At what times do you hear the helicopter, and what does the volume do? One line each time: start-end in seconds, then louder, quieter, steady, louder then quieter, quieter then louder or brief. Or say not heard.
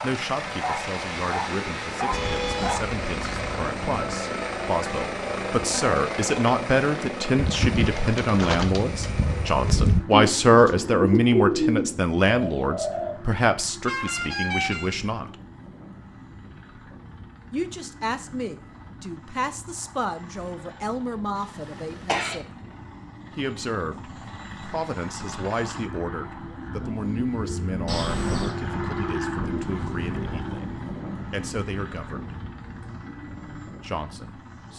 0.0-34.7 quieter then louder.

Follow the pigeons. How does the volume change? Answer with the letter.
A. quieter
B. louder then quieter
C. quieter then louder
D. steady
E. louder
B.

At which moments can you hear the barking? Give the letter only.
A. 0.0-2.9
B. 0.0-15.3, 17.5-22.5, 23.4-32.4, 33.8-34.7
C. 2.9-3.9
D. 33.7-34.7
A.